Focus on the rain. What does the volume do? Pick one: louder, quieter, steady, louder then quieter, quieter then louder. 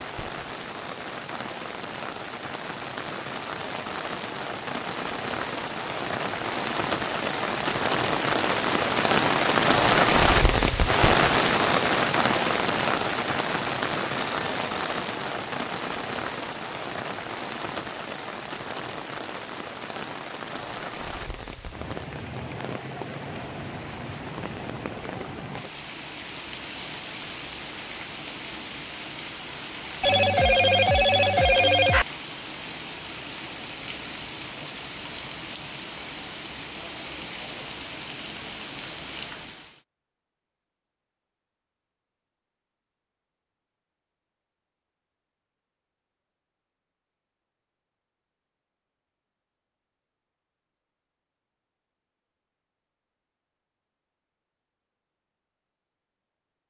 louder then quieter.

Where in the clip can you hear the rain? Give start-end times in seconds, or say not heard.
0.0-39.8.